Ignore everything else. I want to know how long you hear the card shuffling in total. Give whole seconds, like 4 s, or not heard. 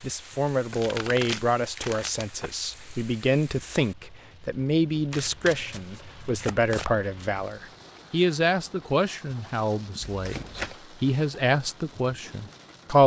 4 s.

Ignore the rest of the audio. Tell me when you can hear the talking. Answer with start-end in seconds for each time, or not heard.
0.0-13.0.